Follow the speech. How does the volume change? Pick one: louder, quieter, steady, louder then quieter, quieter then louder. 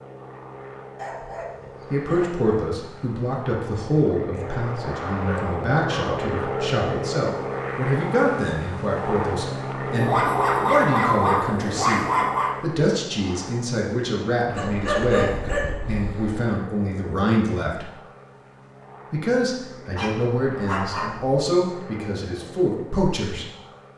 steady.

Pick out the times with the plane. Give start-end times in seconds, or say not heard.
0.0-23.9.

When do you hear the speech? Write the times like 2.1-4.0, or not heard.
1.9-17.9, 19.1-23.4.